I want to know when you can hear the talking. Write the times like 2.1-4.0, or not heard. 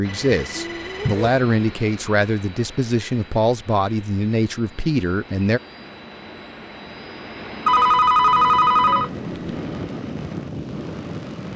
0.0-5.6.